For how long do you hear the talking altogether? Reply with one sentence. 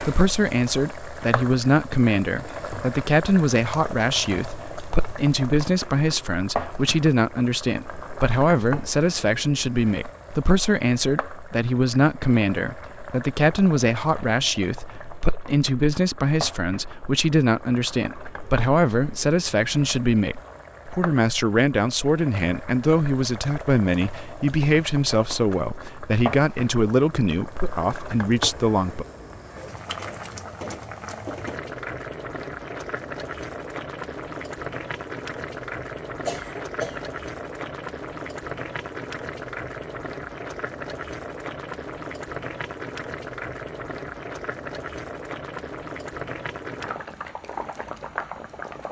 You can hear the talking for 29 seconds altogether.